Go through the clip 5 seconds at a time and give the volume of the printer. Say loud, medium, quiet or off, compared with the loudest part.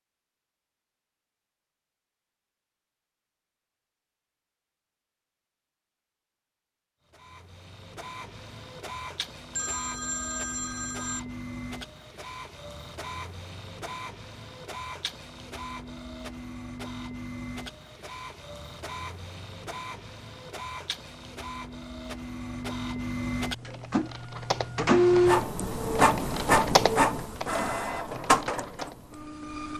off, quiet, quiet, quiet, medium, loud.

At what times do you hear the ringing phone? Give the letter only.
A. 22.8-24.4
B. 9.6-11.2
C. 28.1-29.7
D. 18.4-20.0
B.